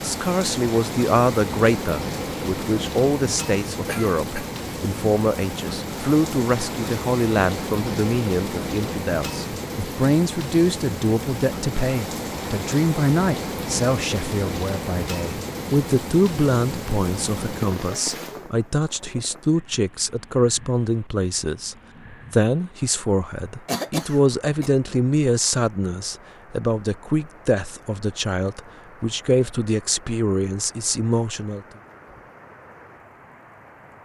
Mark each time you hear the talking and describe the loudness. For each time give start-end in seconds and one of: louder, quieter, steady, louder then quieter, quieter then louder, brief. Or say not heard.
0.0-31.6 steady.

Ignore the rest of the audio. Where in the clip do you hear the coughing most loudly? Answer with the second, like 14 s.
24 s.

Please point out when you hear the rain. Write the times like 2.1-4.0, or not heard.
0.0-34.0.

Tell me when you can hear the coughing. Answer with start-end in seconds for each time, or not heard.
3.9-4.5, 23.6-24.7.